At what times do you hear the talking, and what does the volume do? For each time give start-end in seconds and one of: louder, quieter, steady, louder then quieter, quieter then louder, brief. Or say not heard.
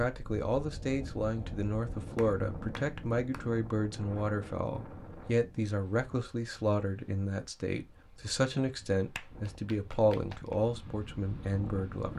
0.0-12.1 steady.